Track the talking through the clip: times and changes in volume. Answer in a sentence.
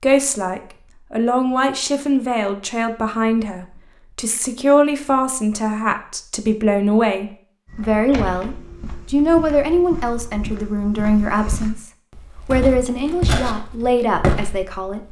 The talking can be heard from 0.0 to 11.8 s, at a steady volume; and briefly from 12.4 to 15.0 s.